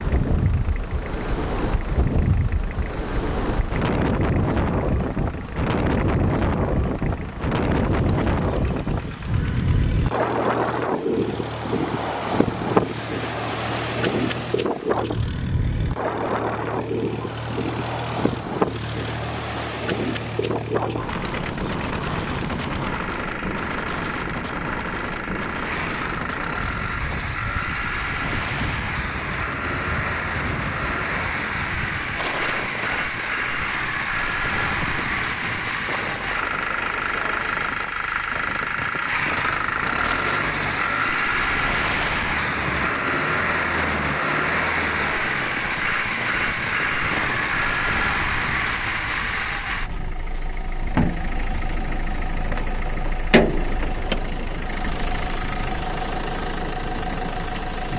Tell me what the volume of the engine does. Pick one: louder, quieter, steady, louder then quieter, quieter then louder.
louder.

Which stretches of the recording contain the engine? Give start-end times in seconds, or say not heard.
0.0-57.9.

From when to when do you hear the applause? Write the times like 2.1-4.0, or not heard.
not heard.